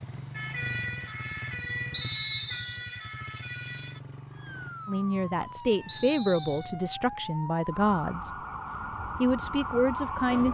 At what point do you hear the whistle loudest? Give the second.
2 s.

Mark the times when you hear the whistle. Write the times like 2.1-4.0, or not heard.
1.9-2.8, 5.8-6.8.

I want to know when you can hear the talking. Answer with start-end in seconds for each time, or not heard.
4.8-8.3, 9.2-10.4.